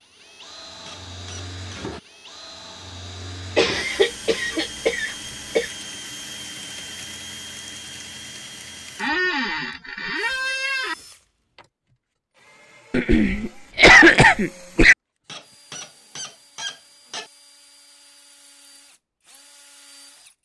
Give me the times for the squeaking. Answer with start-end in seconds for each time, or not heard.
0.8-1.8, 8.9-10.9, 15.2-17.3.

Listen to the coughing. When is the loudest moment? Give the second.
14 s.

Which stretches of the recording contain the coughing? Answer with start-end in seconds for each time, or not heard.
3.5-5.7, 12.9-14.9.